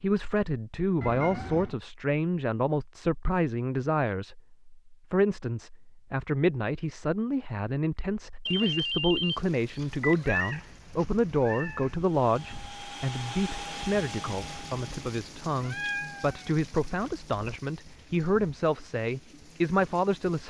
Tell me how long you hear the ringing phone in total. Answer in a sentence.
You can hear the ringing phone for 2 seconds altogether.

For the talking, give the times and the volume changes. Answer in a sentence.
You can hear the talking from 0.0 to 20.4 s, at a steady volume.